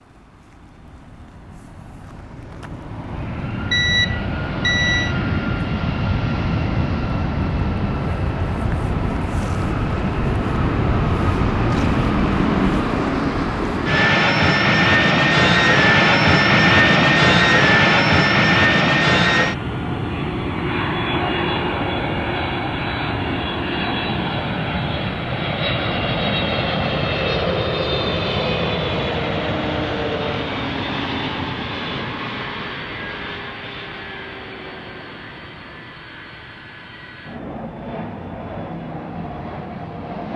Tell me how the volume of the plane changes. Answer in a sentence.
The loudness of the plane goes up, then down.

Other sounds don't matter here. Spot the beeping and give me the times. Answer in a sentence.
The beeping can be heard from 3.7 to 5.2 s.